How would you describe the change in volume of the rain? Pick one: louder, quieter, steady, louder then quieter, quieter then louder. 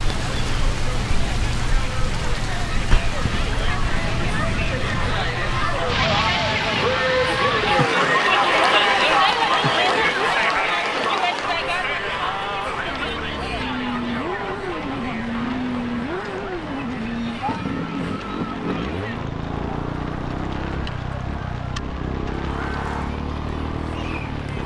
quieter.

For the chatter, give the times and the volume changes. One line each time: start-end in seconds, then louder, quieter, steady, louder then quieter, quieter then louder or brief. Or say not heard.
0.1-24.6 louder then quieter.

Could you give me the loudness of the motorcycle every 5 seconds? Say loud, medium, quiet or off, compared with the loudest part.
off, off, loud, loud, loud.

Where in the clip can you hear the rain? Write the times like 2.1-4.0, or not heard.
0.0-24.6.